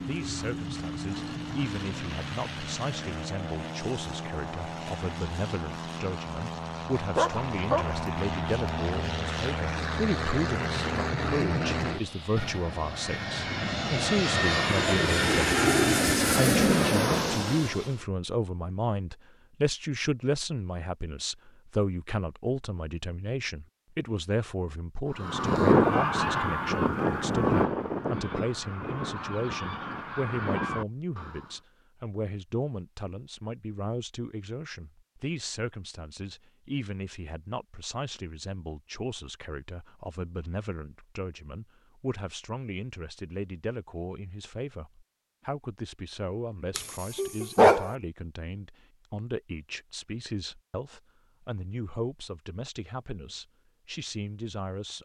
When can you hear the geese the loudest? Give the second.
26 s.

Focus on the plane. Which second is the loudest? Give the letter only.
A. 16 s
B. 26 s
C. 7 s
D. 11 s
A.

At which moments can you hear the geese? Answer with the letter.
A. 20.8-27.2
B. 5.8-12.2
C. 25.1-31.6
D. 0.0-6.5
C.